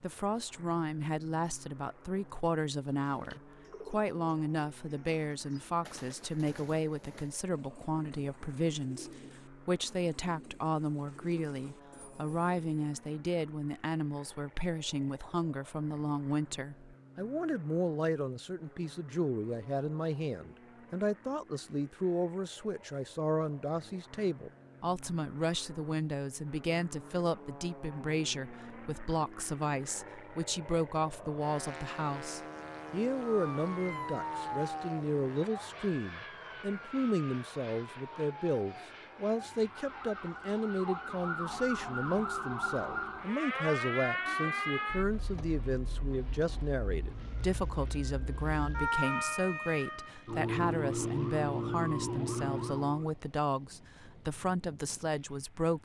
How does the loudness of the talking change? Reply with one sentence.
The volume of the talking stays about the same.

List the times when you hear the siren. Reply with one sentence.
The siren can be heard from 33.2 to 53.1 s.